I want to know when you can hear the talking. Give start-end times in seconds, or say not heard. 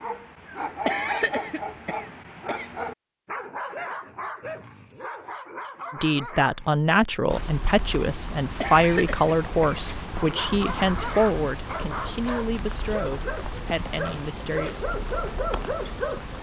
5.9-14.8.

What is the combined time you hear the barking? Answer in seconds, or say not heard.
13 s.